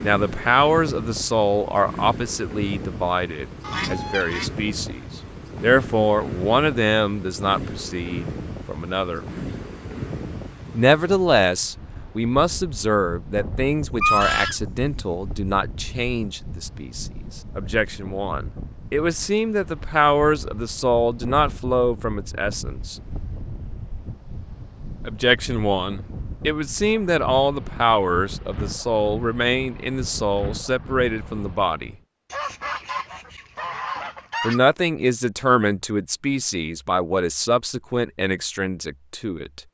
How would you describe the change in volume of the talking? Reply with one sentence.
The volume of the talking stays about the same.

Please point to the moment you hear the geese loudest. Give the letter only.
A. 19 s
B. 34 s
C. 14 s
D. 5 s
C.